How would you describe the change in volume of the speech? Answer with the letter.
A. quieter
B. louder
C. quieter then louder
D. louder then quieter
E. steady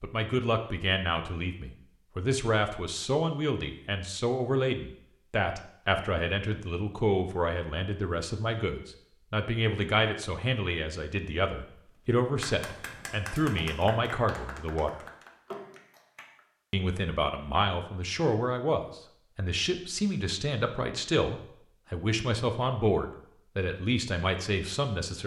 E.